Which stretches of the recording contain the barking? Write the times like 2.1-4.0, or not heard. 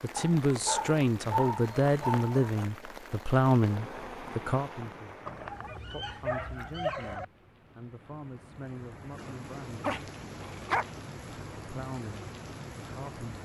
0.1-2.6, 5.2-7.2, 9.8-10.9.